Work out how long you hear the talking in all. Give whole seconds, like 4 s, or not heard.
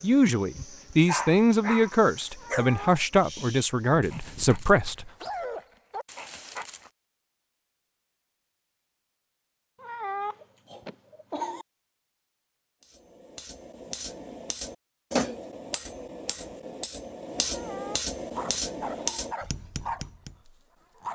5 s.